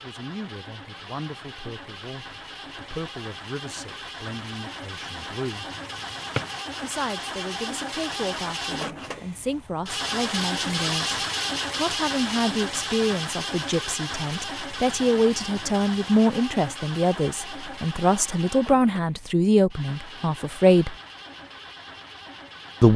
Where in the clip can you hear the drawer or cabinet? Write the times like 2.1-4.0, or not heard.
5.8-6.6.